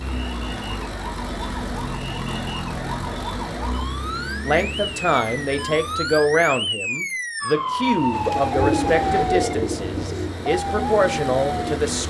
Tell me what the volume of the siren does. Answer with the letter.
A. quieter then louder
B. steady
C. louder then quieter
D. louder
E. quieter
D.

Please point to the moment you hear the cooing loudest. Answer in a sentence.
The loudest moment of the cooing is at 9 seconds.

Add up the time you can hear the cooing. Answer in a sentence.
The cooing can be heard for 4 seconds in total.